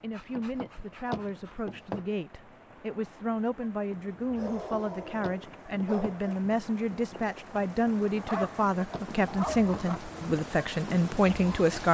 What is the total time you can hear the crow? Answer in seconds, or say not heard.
not heard.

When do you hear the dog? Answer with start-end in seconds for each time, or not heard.
0.1-2.0, 4.3-6.3, 8.2-10.0.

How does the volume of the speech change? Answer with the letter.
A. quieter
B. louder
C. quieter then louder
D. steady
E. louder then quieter
B.